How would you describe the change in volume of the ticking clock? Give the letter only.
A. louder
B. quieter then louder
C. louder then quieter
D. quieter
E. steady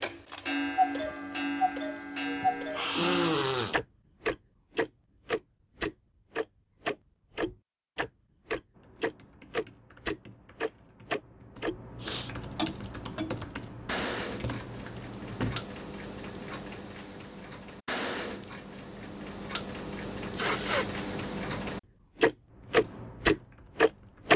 B.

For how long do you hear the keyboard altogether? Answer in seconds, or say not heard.
9 s.